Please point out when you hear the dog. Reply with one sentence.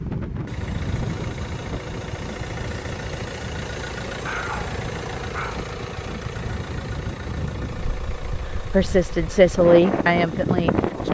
You can hear the dog from 4.2 to 5.7 s.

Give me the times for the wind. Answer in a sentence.
You can hear the wind from 0.0 to 11.0 s.